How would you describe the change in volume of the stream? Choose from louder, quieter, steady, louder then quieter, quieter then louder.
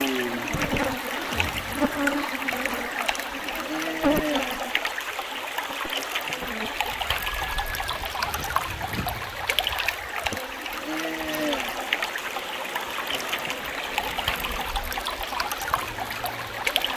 steady.